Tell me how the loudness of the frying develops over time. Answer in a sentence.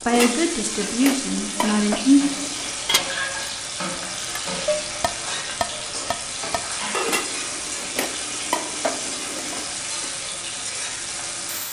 The loudness of the frying stays about the same.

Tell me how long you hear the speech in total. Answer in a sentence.
You can hear the speech for 2 seconds altogether.